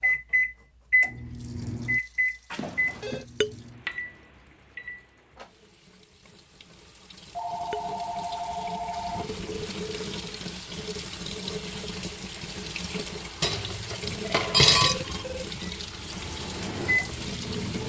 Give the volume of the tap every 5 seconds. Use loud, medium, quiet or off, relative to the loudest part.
quiet, medium, loud, loud.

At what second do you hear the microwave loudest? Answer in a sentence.
The volume of the microwave peaks at 1 second.